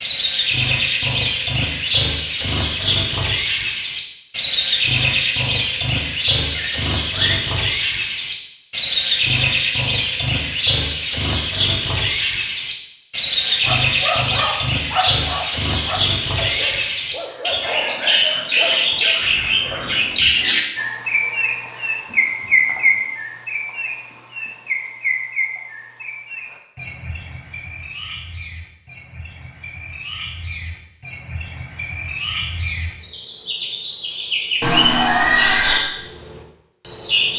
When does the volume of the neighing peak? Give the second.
35 s.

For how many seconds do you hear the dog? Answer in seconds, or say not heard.
6 s.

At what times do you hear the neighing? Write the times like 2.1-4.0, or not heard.
6.5-7.5, 19.2-20.4, 34.6-35.8.